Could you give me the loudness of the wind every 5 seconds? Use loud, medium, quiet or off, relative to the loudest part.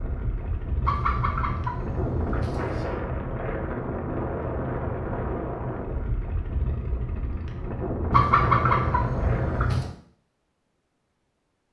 loud, loud, off.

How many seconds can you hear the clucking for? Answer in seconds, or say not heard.
4 s.